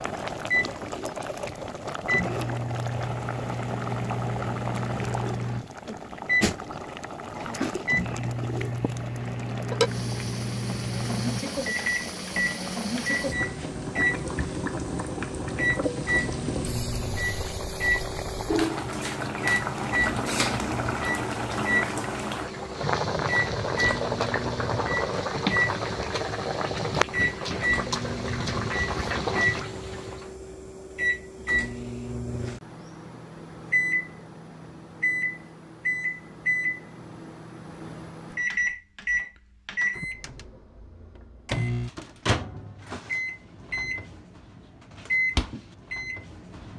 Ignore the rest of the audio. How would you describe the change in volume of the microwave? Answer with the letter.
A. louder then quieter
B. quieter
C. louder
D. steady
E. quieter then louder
D.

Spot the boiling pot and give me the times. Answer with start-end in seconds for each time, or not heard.
0.0-30.3.